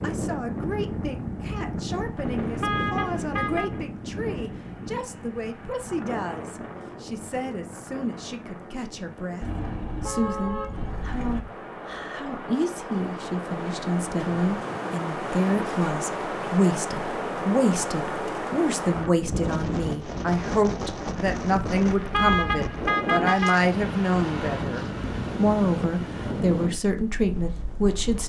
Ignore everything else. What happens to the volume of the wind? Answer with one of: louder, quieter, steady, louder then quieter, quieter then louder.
quieter then louder.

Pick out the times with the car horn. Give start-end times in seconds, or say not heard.
2.1-3.8, 9.4-11.4, 21.7-23.7.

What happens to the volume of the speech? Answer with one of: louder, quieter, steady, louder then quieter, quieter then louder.
louder.